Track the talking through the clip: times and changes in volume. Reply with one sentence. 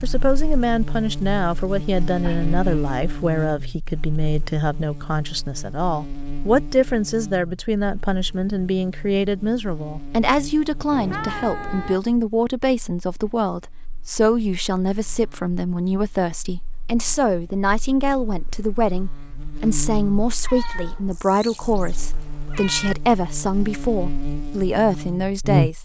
The talking can be heard from 0.0 to 25.8 s, at a steady volume.